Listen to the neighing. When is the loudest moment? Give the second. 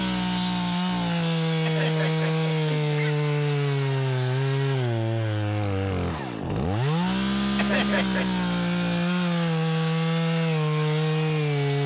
8 s.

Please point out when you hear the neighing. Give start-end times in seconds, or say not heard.
1.6-3.1, 7.5-8.4.